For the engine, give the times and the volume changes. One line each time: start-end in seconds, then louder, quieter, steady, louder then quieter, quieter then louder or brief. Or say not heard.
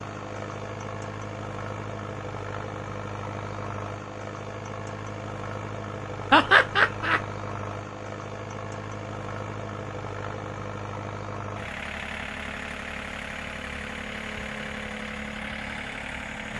0.0-16.5 steady.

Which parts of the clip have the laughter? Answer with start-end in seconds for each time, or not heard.
6.3-7.2.